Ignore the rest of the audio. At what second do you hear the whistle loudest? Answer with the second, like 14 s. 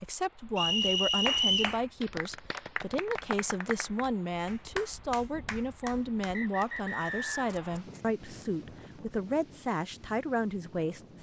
1 s.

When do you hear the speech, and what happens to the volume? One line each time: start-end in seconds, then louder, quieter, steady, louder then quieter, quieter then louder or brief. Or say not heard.
0.0-11.1 steady.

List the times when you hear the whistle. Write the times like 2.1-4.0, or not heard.
0.6-1.8, 5.8-7.5.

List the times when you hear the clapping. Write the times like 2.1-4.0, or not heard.
1.2-6.8.